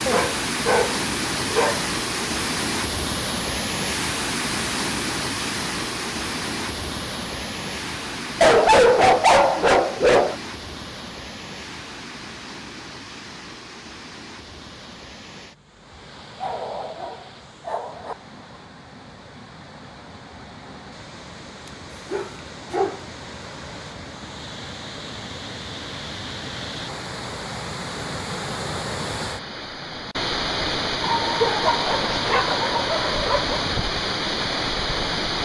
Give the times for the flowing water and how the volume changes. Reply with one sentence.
The flowing water can be heard from 0.0 to 35.4 s, getting quieter then louder.